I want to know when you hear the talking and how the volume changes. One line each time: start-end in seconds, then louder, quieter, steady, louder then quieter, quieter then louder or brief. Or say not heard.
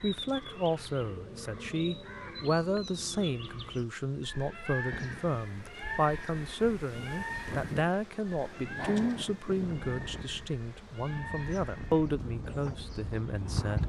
0.0-13.8 steady.